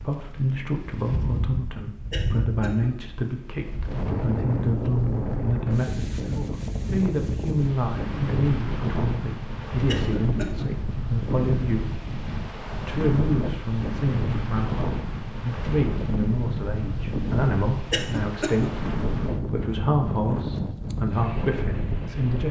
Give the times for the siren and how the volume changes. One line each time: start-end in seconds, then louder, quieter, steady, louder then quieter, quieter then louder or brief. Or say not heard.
not heard.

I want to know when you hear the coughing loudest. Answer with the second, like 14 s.
18 s.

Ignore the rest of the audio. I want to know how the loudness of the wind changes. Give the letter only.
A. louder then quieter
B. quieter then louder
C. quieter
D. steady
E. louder
D.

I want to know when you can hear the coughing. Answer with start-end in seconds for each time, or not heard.
2.1-2.9, 9.8-10.7, 17.9-18.7.